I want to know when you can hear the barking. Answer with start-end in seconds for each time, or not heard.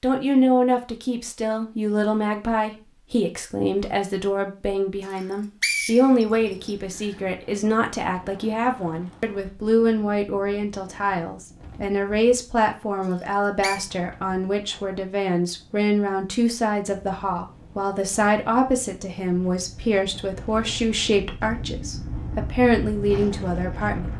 not heard.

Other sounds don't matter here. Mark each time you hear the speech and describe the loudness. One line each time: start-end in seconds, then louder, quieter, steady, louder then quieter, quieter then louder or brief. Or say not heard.
0.0-24.1 steady.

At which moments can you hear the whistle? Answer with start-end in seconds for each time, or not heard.
5.1-6.7, 13.1-13.8.